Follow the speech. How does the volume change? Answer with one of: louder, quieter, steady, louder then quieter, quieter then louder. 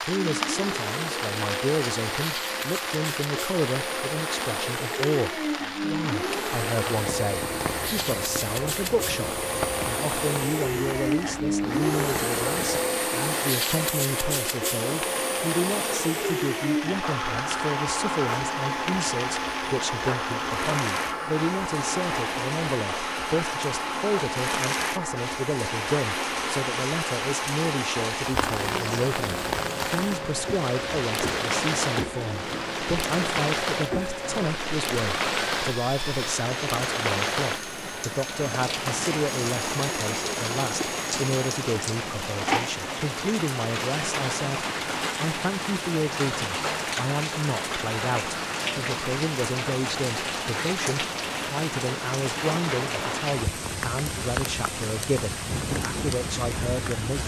steady.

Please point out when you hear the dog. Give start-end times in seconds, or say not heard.
not heard.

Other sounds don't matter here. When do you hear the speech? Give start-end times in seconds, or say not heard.
0.0-57.2.